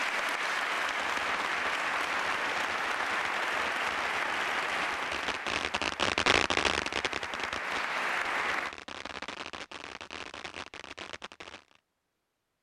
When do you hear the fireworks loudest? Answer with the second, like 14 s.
6 s.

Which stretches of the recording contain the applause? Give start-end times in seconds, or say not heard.
0.0-8.8.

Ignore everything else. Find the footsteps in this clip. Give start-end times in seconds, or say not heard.
not heard.